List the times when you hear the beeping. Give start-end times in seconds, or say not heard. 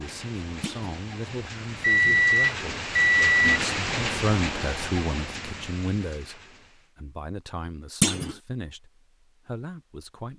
1.8-3.6.